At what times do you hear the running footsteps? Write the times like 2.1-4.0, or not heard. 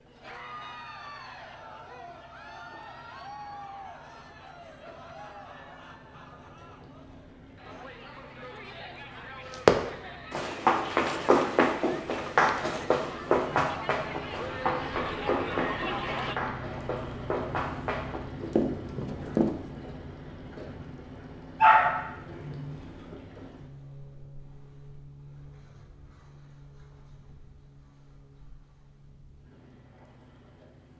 9.5-19.6.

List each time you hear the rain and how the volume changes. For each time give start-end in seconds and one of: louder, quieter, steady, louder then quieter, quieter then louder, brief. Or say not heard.
not heard.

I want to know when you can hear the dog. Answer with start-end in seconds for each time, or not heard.
21.6-23.1.